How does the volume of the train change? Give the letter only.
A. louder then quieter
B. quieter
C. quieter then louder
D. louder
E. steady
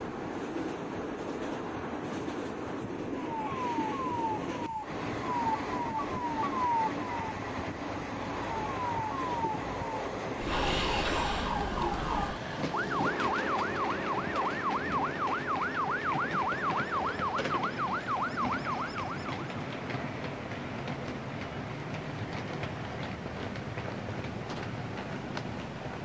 E.